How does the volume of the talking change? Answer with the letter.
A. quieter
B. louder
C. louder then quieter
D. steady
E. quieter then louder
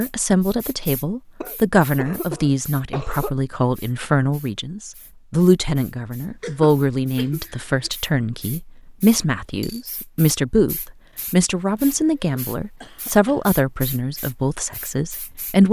D.